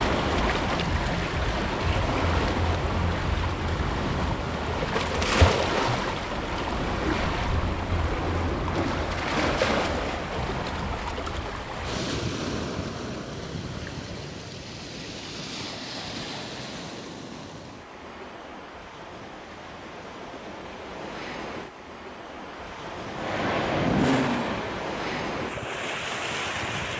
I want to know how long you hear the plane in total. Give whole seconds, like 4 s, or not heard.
4 s.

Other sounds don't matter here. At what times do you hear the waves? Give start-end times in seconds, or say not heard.
0.0-26.9.